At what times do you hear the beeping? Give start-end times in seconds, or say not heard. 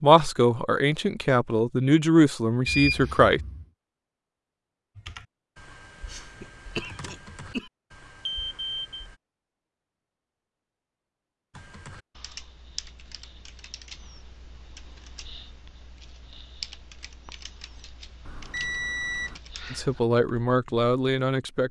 2.6-3.6, 8.2-9.0, 18.2-19.4.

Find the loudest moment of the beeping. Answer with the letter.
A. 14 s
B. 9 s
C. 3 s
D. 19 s
C.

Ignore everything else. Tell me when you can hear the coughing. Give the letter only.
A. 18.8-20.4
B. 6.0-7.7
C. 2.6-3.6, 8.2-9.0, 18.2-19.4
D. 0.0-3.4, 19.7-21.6
B.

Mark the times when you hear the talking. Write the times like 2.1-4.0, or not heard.
0.0-3.4, 19.7-21.6.